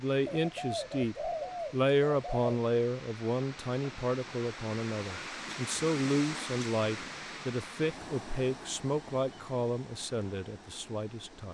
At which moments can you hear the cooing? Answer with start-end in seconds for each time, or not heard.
0.2-2.5.